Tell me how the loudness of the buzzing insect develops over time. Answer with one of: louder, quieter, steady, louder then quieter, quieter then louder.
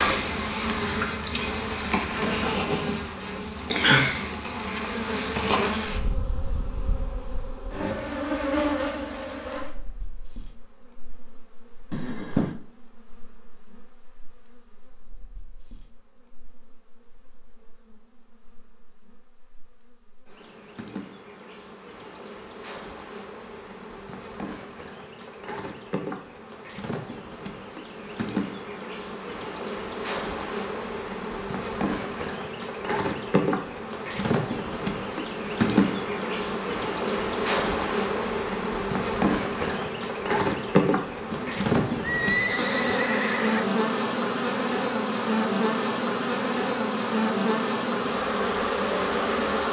quieter then louder.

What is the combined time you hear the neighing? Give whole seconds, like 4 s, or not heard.
3 s.